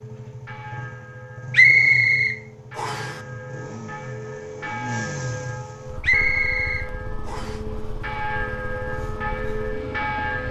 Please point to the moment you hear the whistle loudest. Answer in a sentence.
The loudest moment of the whistle is at 2 seconds.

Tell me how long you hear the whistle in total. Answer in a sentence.
The whistle can be heard for 3 seconds in total.